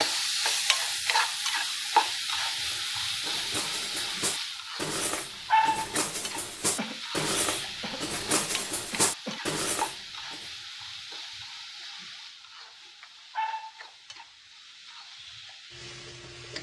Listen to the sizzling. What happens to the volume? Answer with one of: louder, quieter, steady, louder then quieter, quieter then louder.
quieter.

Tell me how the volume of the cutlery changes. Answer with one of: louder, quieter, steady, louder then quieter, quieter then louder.
louder.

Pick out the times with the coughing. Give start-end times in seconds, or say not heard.
6.8-9.4.